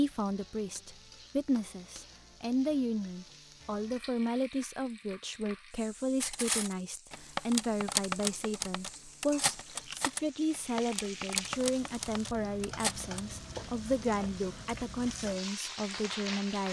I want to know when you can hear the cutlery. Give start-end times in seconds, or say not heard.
6.2-13.2.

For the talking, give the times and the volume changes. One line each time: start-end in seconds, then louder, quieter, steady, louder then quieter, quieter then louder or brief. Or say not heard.
0.0-16.6 steady.